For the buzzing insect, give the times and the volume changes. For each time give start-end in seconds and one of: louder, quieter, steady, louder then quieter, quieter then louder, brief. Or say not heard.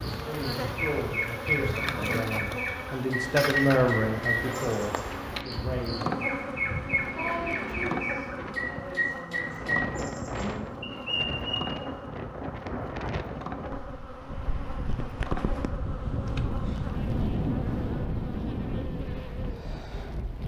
0.0-20.4 quieter.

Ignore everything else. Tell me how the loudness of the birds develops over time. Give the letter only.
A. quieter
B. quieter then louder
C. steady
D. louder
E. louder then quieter
C.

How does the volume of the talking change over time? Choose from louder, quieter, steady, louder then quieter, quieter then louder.
louder then quieter.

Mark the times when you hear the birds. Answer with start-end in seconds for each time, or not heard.
0.0-11.8.